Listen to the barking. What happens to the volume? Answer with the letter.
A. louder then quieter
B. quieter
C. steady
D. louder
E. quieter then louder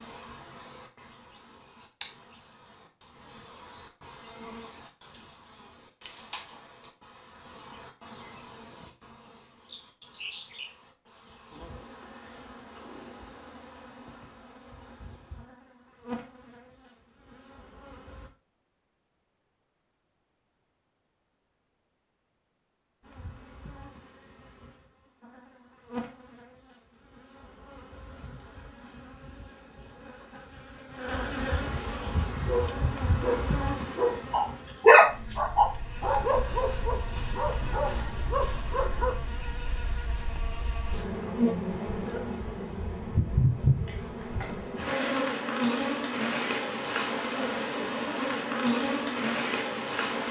A.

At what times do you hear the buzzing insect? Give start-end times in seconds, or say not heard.
0.0-18.3, 23.0-50.2.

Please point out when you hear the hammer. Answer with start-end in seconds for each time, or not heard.
not heard.